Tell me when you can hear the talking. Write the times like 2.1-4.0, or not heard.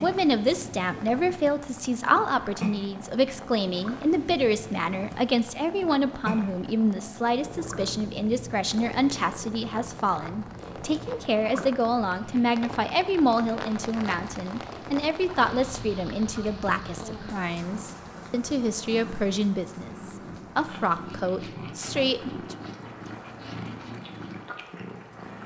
0.0-22.6.